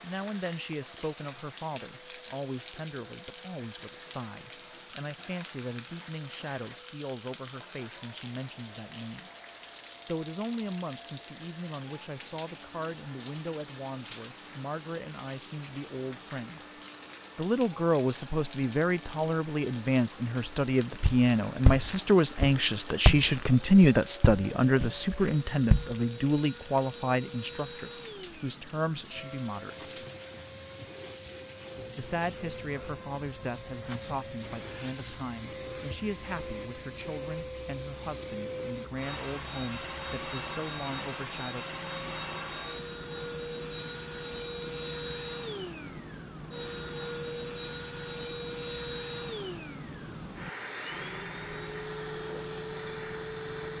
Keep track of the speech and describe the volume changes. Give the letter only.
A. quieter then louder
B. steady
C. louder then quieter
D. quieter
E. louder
C.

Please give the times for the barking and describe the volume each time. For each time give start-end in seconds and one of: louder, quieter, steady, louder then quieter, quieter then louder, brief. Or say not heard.
not heard.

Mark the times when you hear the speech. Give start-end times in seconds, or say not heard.
0.0-9.3, 10.1-16.8, 17.4-30.1, 31.9-41.6.